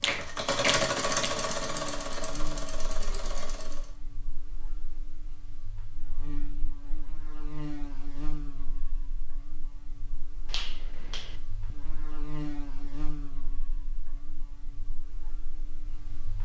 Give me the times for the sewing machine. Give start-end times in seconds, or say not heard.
0.0-3.9.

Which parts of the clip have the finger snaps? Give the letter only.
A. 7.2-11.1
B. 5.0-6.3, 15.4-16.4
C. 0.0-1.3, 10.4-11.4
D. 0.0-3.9
C.